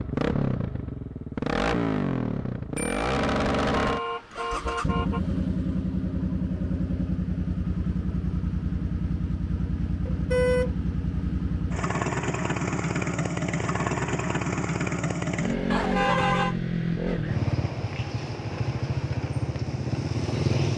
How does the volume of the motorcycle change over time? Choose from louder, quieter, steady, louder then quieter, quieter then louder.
steady.